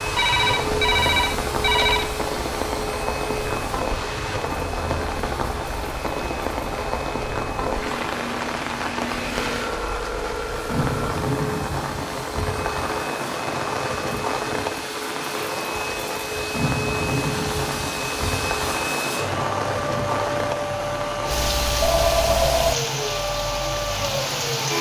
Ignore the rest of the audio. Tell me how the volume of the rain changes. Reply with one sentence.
The volume of the rain stays about the same.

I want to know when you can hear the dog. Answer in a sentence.
You can't hear the dog here.